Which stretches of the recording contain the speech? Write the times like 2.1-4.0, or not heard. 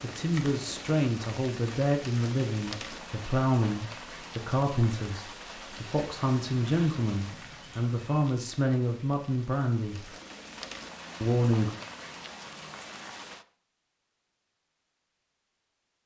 0.0-10.1, 11.2-11.8.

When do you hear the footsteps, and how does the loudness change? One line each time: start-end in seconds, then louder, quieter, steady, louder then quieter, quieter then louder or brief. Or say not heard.
not heard.